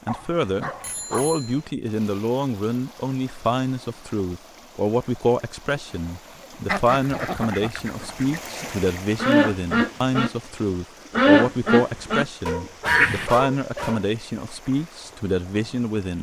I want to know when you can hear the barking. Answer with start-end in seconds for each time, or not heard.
0.1-1.4, 12.4-14.1.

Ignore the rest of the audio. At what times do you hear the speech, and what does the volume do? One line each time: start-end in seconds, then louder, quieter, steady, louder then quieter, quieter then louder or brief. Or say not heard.
0.1-16.1 steady.